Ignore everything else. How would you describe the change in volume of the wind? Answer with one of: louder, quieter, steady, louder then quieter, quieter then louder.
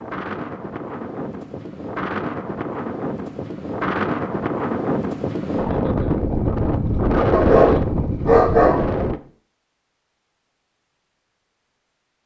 louder.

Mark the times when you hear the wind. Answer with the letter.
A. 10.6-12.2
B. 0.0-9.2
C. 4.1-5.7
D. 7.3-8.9
B.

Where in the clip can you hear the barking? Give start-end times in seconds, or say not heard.
7.3-8.9.